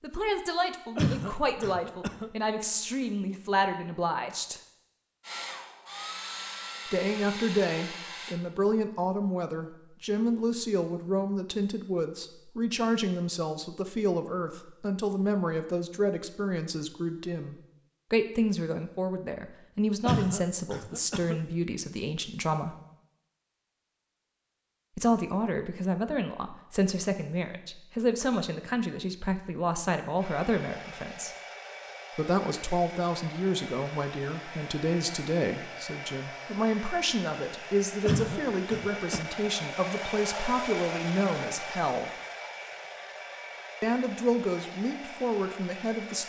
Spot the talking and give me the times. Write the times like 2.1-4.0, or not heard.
0.0-4.6, 6.8-22.8, 24.9-31.4, 32.1-42.1, 43.8-46.2.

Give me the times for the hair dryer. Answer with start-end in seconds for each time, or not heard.
5.2-8.4, 30.1-46.2.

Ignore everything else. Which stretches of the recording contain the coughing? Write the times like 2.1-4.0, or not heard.
0.9-2.3, 20.1-21.4, 38.0-39.2.